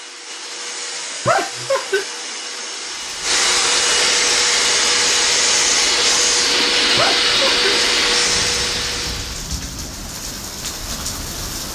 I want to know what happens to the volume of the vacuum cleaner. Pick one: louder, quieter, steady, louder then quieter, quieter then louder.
louder.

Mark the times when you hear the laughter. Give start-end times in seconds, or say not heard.
1.2-2.0, 7.0-7.6.